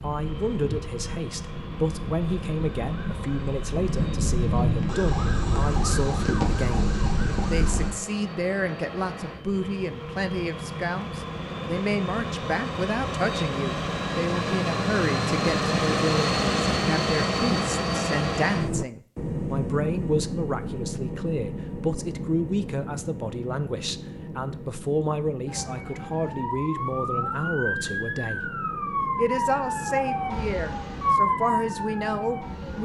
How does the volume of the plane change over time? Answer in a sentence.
The volume of the plane goes up, then down.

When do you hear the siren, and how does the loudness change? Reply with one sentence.
You can hear the siren from 0.0 to 8.0 s, getting louder; and from 25.4 to 32.8 s, getting louder.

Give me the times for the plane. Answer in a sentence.
You can hear the plane from 0.0 to 32.8 s.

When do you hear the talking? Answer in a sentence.
The talking can be heard from 0.0 to 28.6 s and from 29.1 to 32.8 s.